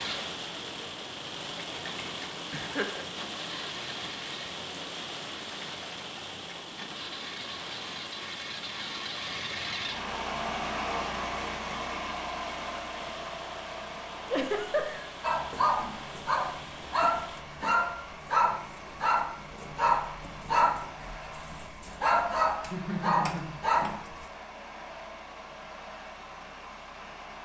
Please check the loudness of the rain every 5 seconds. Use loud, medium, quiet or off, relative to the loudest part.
loud, loud, medium, medium, off, off.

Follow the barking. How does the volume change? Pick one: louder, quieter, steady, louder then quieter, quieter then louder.
steady.